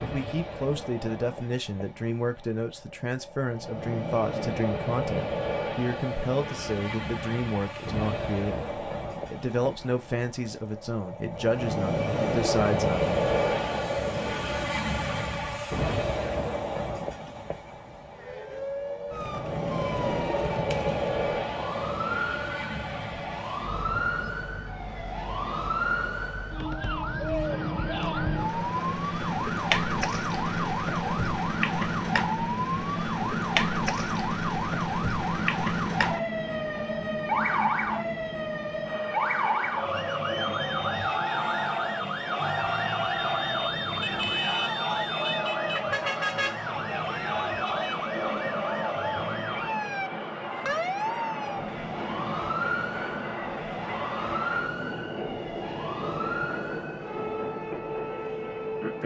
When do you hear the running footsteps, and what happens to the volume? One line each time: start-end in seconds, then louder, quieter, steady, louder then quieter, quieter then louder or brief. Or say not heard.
not heard.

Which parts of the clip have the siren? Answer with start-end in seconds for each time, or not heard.
18.1-59.0.